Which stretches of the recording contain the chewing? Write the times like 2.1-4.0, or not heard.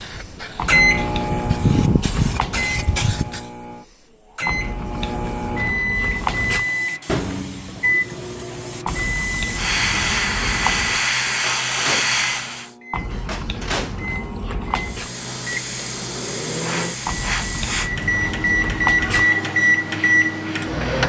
0.6-2.7, 4.5-6.7, 8.8-11.1, 12.9-15.1, 17.1-19.2.